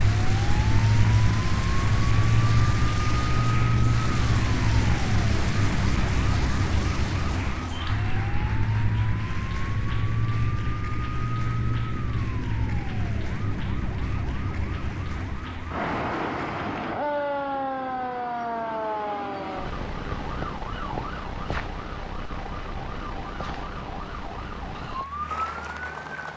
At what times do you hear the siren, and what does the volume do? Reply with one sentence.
The siren can be heard from 0.0 to 26.3 s, getting quieter.